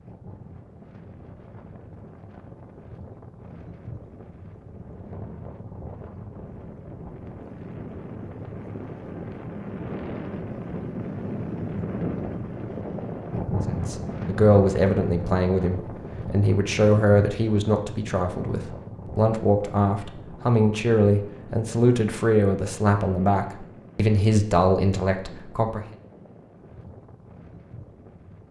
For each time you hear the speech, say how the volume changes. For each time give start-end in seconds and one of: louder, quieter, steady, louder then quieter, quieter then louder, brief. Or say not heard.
13.7-25.9 steady.